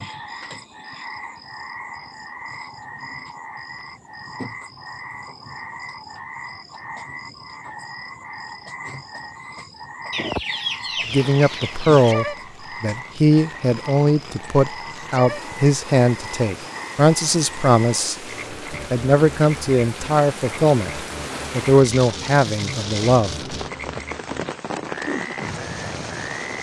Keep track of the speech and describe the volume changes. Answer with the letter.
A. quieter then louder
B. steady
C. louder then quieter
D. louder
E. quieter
B.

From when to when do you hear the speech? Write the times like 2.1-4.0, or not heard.
11.1-23.4.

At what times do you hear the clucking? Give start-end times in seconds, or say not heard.
10.1-12.2.